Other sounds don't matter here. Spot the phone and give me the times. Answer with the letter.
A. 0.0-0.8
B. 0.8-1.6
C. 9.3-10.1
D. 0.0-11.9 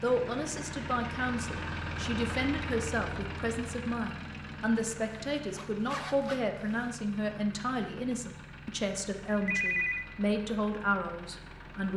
C.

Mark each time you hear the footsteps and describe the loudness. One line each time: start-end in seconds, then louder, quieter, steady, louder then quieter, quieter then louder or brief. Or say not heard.
not heard.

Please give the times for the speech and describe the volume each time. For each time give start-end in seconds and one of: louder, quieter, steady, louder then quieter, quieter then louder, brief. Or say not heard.
0.0-11.9 steady.